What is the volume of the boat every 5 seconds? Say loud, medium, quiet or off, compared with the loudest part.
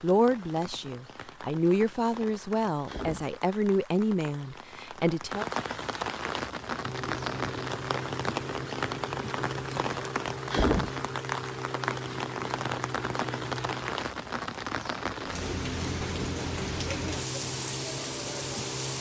off, loud, loud, loud.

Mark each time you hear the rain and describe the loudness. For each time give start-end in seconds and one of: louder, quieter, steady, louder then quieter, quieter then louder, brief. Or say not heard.
0.0-18.9 louder.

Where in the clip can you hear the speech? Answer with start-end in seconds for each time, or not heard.
0.0-5.5.